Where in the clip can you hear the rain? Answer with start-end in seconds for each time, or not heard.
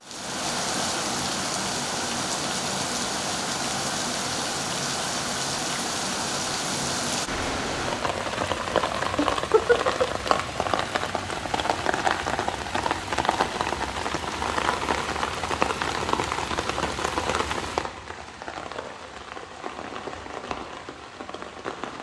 0.0-21.9.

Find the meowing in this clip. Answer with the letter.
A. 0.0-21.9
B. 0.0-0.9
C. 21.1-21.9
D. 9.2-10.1
D.